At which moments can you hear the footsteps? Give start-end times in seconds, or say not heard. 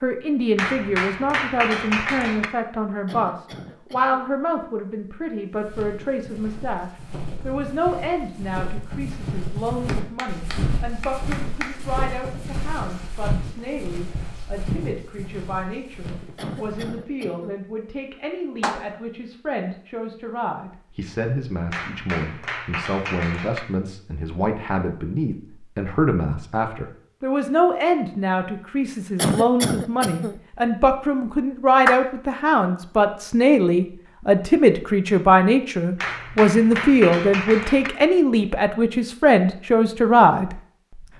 5.5-16.9.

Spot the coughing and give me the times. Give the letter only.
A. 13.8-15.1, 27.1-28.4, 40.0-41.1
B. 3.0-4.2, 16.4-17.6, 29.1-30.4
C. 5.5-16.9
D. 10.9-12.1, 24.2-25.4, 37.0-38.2
B.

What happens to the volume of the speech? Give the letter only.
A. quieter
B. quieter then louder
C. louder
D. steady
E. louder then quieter
B.